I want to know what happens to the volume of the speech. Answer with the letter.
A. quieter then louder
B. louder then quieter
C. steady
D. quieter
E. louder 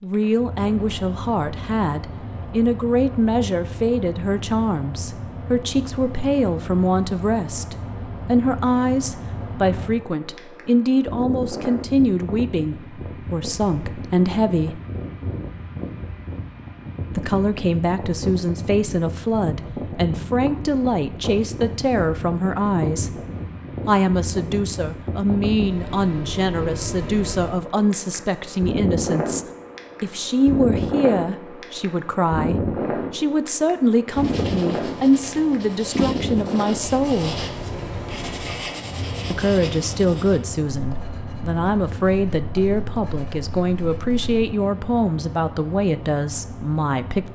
C.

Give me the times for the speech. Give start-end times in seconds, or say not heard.
0.0-14.8, 17.1-23.1, 23.9-37.4, 39.3-47.3.